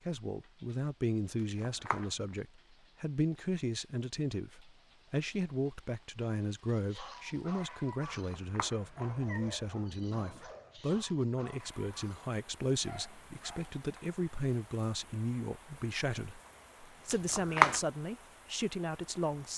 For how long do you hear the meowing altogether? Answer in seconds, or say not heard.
3 s.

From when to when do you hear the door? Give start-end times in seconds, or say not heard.
not heard.